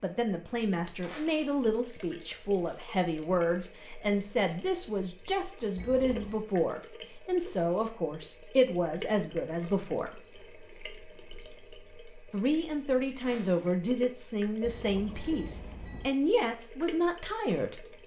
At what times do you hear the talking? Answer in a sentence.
The talking can be heard from 0.0 to 10.2 s and from 12.3 to 17.8 s.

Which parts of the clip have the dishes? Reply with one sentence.
The dishes can't be heard in this clip.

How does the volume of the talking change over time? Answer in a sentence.
The loudness of the talking stays about the same.